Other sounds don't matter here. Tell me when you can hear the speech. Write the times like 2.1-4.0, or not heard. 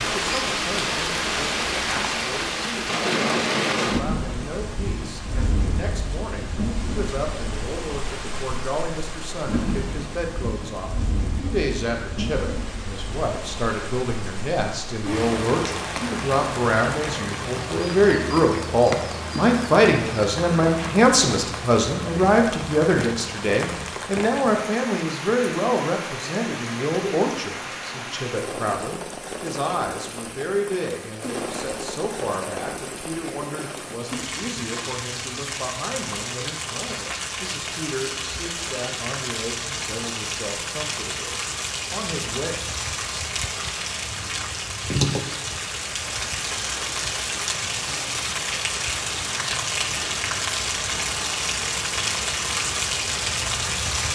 0.1-42.6.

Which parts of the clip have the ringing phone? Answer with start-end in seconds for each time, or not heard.
not heard.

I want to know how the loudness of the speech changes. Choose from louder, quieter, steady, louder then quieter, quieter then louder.
louder then quieter.